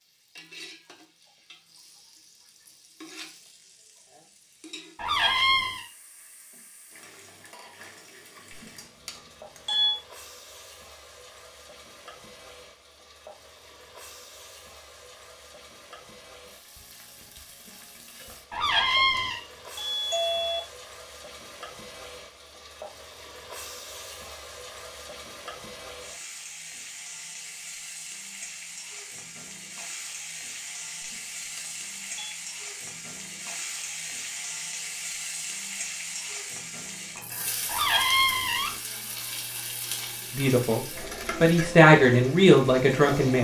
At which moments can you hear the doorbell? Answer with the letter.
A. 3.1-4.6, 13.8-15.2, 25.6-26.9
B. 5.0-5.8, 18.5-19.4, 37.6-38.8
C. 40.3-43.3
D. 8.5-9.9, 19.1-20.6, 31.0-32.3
D.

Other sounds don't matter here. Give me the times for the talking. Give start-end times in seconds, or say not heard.
40.3-43.3.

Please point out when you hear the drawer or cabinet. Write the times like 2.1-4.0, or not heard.
5.0-5.8, 18.5-19.4, 37.6-38.8.